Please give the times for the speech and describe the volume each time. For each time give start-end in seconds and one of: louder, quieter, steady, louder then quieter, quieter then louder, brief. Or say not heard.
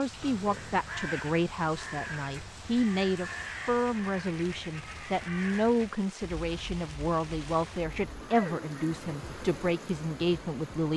0.0-10.9 steady.